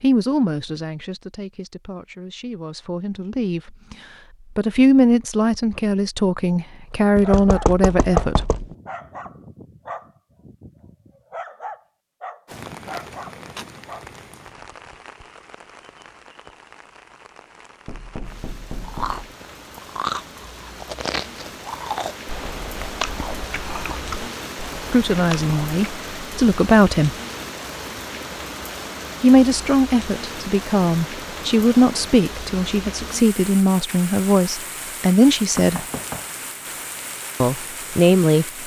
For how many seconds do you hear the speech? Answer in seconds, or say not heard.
18 s.